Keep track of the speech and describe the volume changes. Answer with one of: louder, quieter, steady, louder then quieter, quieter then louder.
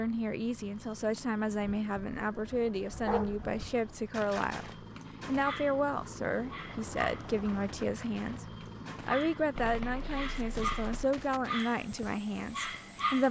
steady.